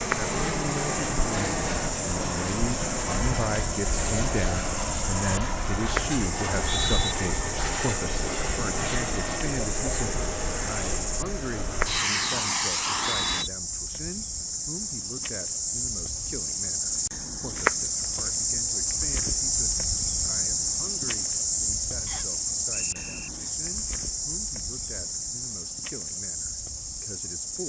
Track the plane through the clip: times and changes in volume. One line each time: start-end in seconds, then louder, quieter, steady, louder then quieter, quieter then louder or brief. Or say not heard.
0.0-13.4 steady.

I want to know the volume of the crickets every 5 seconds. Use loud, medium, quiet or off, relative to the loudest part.
medium, medium, medium, loud, loud, medium.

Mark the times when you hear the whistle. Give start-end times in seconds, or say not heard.
6.6-7.2, 12.8-13.5, 22.1-23.3.